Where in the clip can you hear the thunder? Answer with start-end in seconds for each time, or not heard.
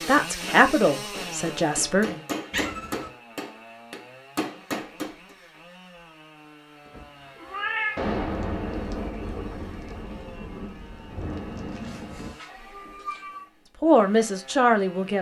8.0-12.3.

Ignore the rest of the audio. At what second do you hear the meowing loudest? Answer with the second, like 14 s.
8 s.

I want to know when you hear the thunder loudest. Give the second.
8 s.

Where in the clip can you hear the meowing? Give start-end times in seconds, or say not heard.
2.5-3.1, 6.8-8.2, 11.8-13.4.